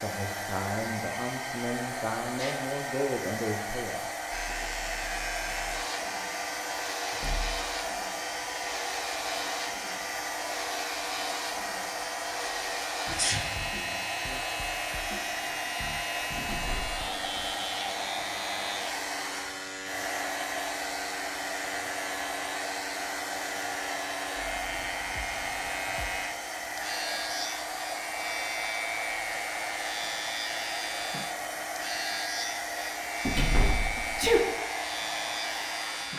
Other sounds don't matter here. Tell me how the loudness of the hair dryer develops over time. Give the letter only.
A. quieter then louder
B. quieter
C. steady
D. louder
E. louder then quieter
C.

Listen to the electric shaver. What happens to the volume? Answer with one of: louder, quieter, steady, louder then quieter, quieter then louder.
steady.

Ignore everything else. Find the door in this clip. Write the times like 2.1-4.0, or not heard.
7.1-7.6, 16.4-17.6, 33.2-34.4.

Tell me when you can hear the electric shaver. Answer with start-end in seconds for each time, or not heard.
4.3-36.1.